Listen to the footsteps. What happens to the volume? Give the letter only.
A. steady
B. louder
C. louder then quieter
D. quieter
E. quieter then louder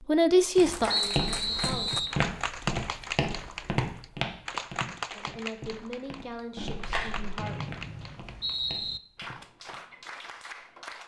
D.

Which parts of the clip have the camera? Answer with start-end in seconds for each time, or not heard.
0.7-1.8, 6.5-7.4.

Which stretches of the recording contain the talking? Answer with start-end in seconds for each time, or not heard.
0.0-1.9, 5.2-7.5.